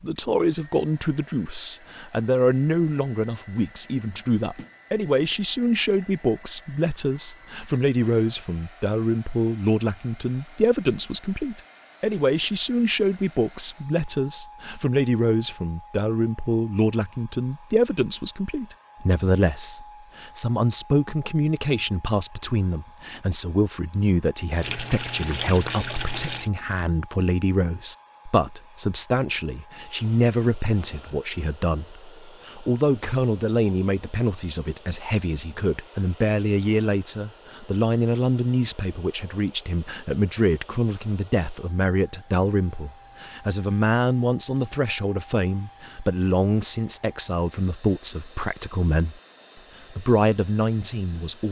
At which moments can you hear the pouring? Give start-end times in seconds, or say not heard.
24.6-26.5.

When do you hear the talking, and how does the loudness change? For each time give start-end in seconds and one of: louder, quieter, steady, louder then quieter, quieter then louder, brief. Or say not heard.
0.0-49.2 steady
49.9-51.4 brief.